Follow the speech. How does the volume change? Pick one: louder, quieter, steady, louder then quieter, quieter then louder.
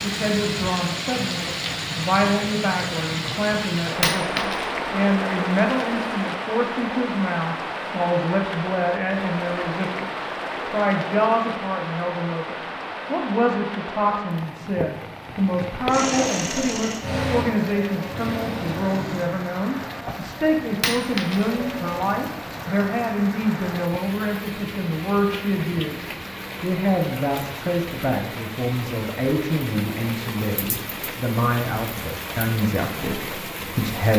steady.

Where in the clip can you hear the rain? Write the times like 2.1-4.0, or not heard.
0.0-34.1.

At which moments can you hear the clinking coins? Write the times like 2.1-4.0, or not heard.
4.0-4.7, 20.8-21.5.